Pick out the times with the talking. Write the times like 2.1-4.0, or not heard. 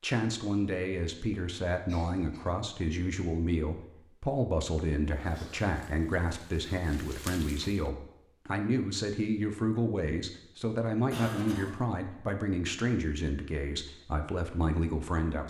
0.0-15.4.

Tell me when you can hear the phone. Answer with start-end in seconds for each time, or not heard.
not heard.